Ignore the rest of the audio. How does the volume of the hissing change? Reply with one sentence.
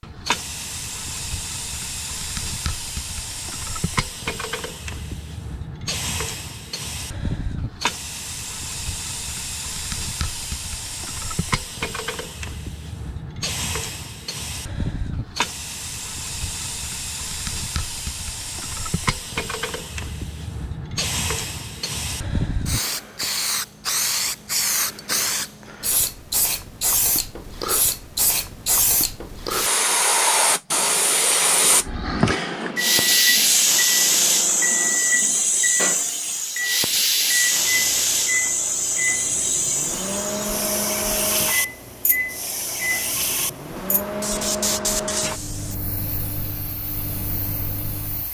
The loudness of the hissing goes up, then down.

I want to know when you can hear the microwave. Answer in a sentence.
The microwave can be heard from 31.7 to 48.3 s.